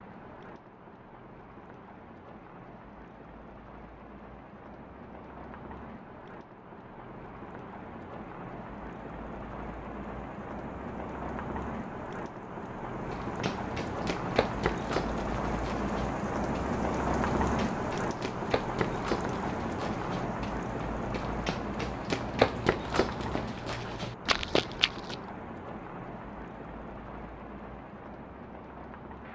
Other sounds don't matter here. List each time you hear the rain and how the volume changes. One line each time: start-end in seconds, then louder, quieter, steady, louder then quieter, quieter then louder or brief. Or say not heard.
0.0-29.3 louder then quieter.